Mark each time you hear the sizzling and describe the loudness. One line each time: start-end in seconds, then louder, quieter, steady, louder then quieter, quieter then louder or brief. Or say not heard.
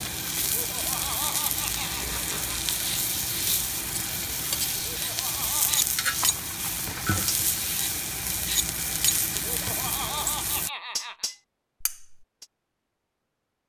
0.0-10.7 steady.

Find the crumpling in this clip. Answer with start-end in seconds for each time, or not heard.
6.2-7.4.